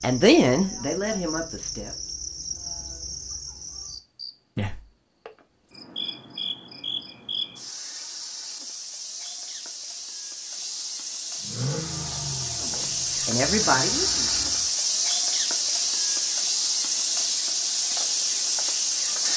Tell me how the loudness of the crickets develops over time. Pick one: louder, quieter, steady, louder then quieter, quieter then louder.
louder.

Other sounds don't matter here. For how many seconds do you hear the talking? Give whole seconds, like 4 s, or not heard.
4 s.